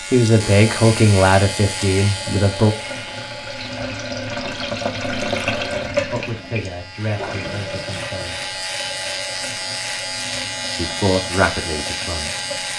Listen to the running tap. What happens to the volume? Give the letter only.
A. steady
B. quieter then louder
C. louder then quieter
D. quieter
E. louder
C.